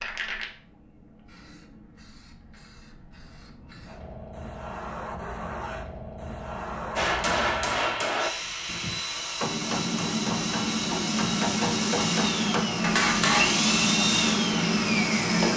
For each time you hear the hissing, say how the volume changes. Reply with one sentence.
You can hear the hissing from 0.0 to 15.5 s, getting louder.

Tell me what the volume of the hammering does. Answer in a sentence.
The loudness of the hammering goes down, then up.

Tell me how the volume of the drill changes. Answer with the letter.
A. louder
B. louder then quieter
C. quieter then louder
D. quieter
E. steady
A.